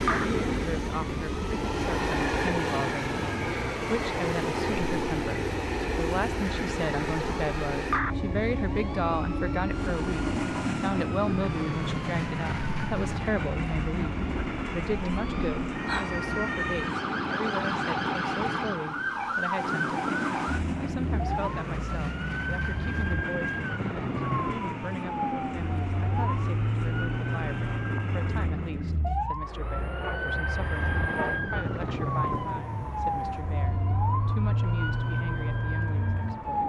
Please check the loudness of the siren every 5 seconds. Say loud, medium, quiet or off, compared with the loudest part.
medium, medium, medium, loud, loud, loud, loud, loud.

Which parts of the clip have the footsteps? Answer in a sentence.
You can't hear the footsteps here.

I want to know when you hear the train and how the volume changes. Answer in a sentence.
The train can be heard from 0.0 to 36.6 s, getting quieter.